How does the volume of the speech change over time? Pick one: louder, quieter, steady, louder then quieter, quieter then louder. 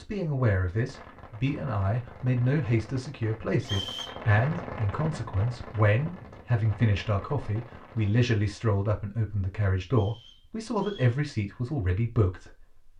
steady.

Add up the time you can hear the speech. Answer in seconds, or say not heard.
13 s.